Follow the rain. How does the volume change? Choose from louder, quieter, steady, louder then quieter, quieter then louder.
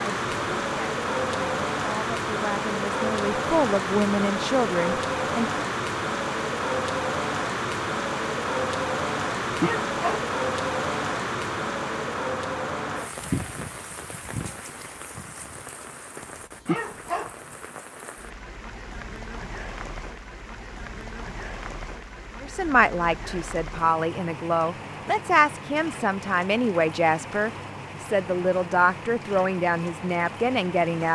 quieter.